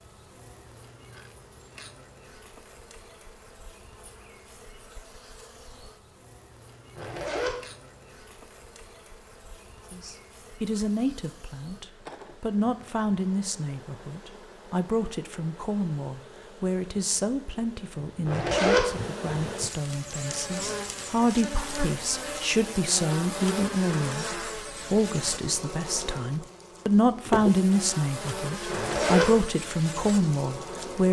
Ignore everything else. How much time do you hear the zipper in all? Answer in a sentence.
The zipper can be heard for 2 seconds in total.